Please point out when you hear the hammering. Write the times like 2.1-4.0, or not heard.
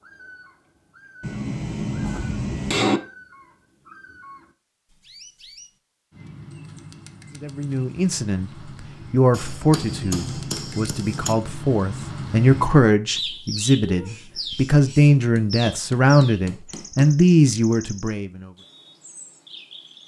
1.2-3.0, 9.3-11.3, 15.3-17.1.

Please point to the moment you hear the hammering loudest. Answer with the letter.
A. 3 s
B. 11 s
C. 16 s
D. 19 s
A.